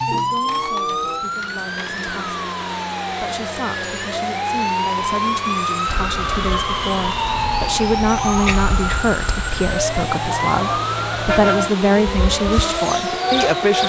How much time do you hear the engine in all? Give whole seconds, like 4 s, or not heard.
14 s.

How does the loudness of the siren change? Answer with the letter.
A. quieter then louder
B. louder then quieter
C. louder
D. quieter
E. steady
E.